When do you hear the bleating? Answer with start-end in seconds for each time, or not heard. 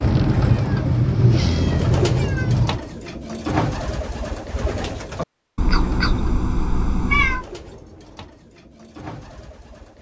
not heard.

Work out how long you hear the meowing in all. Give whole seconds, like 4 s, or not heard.
5 s.